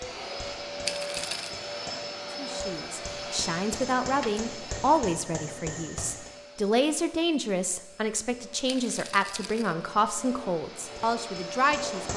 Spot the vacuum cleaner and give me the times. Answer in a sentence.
You can hear the vacuum cleaner from 0.0 to 12.1 s.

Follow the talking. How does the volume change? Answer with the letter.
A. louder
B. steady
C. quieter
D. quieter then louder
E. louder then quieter
B.